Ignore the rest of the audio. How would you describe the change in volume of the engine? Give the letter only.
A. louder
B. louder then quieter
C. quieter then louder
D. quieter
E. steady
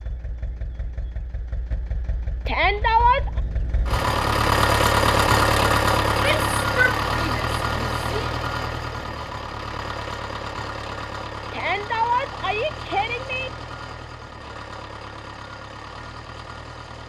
B.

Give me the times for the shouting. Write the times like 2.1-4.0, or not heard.
2.5-3.3, 6.2-8.3, 11.5-13.5.